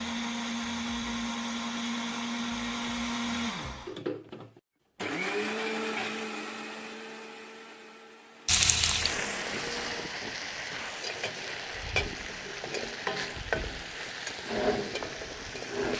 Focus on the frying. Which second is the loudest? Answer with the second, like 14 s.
9 s.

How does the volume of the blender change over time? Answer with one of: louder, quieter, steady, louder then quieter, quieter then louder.
quieter.